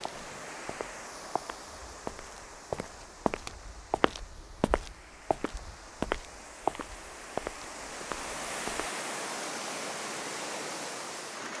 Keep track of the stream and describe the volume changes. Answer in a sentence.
The loudness of the stream goes down, then up.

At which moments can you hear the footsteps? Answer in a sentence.
You can hear the footsteps from 0.0 to 8.9 s.